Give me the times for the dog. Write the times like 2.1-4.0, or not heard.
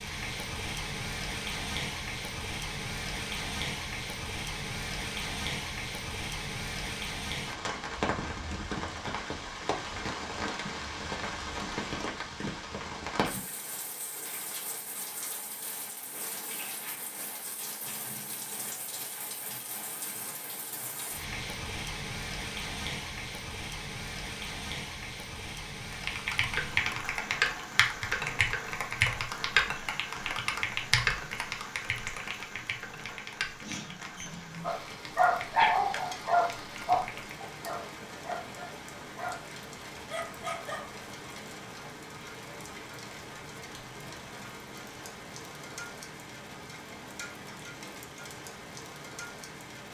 34.6-41.0.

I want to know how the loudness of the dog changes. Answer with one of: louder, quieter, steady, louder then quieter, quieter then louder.
quieter.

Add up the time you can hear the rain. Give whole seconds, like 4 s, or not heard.
50 s.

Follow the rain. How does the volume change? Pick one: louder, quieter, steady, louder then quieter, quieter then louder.
quieter.